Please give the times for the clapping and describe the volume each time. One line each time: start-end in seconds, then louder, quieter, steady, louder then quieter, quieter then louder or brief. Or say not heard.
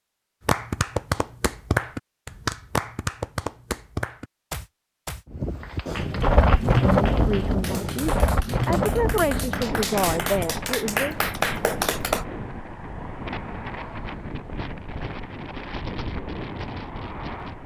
0.5-12.2 quieter then louder.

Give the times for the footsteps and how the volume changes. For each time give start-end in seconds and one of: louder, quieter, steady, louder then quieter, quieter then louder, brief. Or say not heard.
not heard.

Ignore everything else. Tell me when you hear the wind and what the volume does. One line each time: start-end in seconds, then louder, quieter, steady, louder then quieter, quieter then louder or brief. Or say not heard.
5.3-17.6 quieter.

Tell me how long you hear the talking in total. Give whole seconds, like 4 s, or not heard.
4 s.